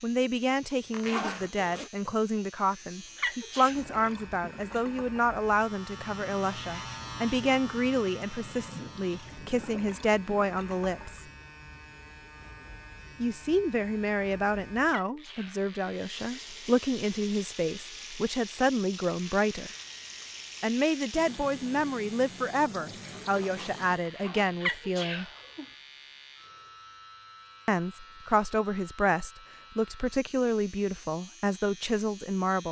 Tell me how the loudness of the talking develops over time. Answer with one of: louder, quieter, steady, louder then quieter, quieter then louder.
steady.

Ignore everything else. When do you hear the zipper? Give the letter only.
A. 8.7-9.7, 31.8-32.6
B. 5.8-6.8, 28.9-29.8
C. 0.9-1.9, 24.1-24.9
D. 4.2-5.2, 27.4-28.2
C.